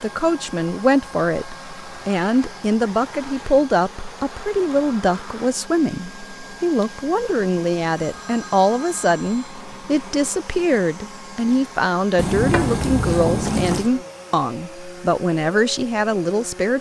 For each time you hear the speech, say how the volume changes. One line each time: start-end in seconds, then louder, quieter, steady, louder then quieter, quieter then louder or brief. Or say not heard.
0.0-16.7 steady.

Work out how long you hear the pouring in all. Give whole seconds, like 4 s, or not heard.
2 s.